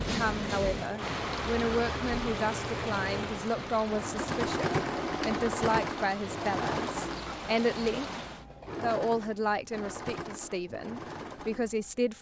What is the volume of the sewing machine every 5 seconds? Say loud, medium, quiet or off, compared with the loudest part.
loud, loud, medium.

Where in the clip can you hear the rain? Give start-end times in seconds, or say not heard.
0.0-8.4.